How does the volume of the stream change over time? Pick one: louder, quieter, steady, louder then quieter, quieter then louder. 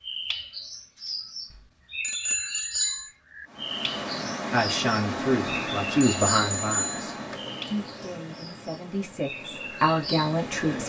quieter.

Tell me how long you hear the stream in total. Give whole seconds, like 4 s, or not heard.
7 s.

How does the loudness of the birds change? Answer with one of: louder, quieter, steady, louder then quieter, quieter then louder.
steady.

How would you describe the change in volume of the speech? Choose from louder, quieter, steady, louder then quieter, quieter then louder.
quieter then louder.